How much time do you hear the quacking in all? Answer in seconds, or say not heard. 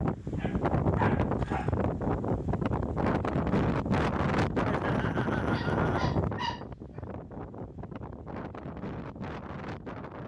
not heard.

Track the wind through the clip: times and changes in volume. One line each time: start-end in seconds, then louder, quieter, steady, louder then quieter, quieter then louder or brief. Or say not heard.
0.0-10.2 quieter.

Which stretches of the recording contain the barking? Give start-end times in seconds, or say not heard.
0.3-1.8, 5.5-7.0.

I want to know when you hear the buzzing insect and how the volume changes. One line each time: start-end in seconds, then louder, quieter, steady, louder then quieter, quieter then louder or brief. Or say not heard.
not heard.